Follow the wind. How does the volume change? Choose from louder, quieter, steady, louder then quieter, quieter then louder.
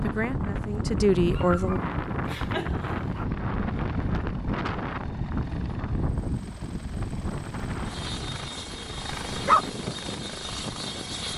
quieter.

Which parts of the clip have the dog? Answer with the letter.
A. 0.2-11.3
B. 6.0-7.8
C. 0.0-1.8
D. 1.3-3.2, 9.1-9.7
D.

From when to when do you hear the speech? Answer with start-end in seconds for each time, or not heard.
0.0-1.8.